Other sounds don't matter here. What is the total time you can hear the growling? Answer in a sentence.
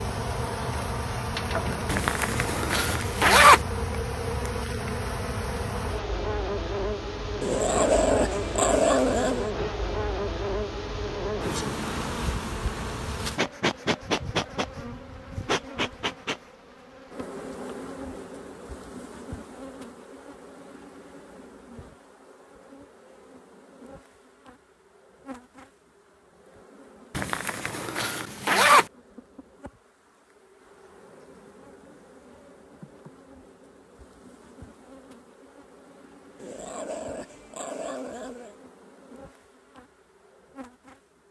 The growling can be heard for 4 seconds in total.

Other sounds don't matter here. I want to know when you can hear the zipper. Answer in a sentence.
The zipper can be heard from 1.9 to 3.6 s and from 27.1 to 28.9 s.